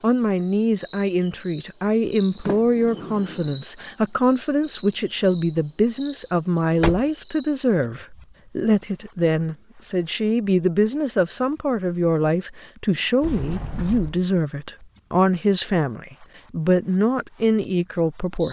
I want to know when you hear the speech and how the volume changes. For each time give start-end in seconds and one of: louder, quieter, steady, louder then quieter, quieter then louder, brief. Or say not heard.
0.0-18.4 steady.